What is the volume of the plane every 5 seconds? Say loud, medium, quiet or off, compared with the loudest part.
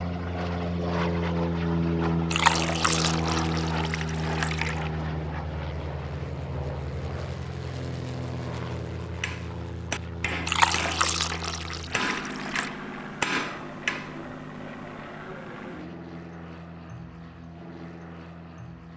loud, medium, medium, quiet.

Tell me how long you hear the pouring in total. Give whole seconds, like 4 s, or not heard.
5 s.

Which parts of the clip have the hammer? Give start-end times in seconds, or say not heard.
9.2-14.2.